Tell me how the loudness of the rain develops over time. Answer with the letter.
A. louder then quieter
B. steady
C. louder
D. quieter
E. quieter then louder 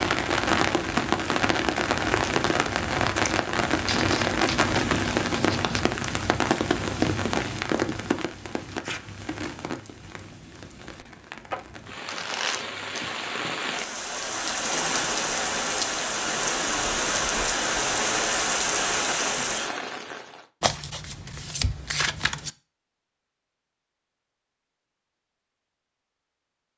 E.